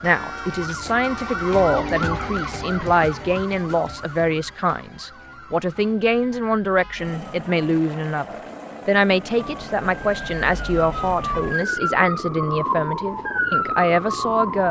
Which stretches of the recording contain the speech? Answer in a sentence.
You can hear the speech from 0.0 to 14.6 s.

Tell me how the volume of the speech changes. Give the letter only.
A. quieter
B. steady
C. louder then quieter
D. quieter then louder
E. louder
B.